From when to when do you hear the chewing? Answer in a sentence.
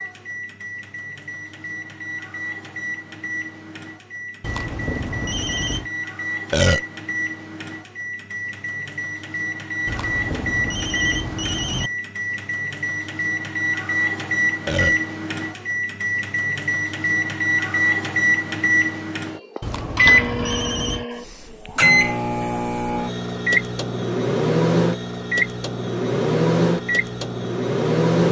You can't hear the chewing here.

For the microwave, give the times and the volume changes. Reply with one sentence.
You can hear the microwave from 0.0 to 28.2 s, getting louder.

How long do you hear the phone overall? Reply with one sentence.
You can hear the phone for 5 seconds altogether.